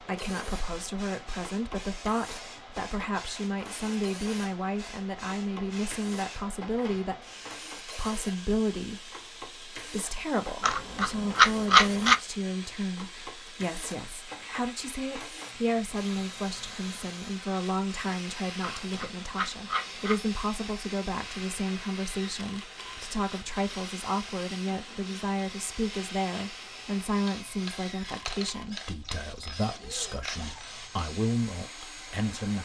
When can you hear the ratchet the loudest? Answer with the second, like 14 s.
12 s.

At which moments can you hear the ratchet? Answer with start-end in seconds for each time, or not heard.
10.6-12.2, 18.6-20.1.